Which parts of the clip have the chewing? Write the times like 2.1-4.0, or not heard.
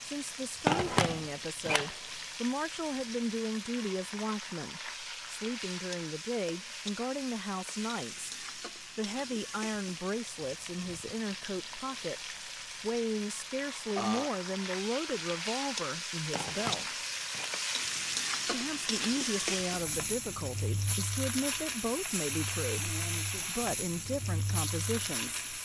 not heard.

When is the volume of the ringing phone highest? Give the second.
1 s.